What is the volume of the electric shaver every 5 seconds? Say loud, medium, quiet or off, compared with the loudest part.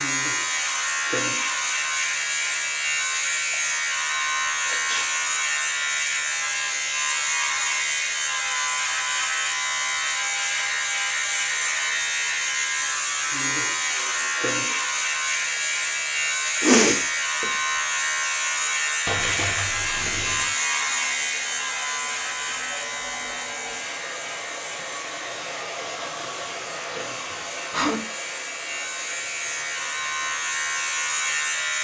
loud, loud, loud, loud, loud, medium, loud.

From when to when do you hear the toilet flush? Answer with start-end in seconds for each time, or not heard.
19.1-20.6.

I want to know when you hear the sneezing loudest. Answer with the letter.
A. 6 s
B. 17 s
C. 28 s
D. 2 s
B.